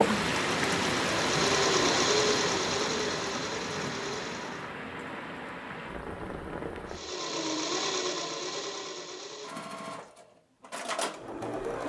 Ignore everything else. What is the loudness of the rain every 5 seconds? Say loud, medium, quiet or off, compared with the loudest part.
loud, medium, off.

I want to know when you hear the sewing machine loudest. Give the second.
2 s.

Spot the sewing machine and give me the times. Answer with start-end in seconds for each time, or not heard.
0.0-4.7, 6.9-11.8.